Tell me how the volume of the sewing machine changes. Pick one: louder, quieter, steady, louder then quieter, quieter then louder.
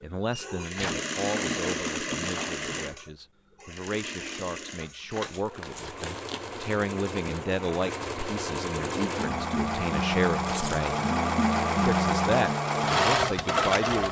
quieter then louder.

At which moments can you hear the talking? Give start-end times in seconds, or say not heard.
0.0-10.9, 11.8-14.0.